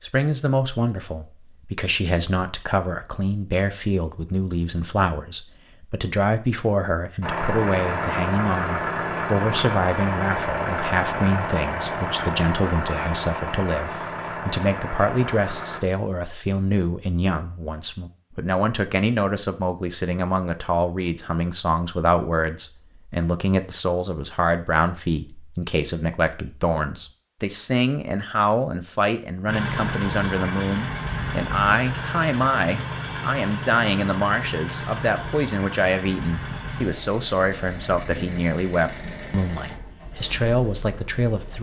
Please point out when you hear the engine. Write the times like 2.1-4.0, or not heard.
7.2-15.8, 29.4-41.5.